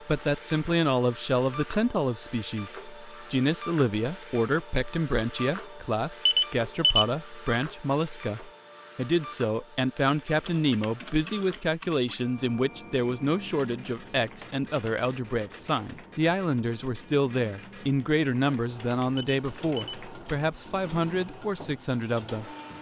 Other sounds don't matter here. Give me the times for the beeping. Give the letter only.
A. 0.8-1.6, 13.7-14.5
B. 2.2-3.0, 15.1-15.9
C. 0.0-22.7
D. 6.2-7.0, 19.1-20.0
D.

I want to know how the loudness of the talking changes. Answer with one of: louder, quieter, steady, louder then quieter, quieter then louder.
steady.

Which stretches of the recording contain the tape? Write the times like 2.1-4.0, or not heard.
not heard.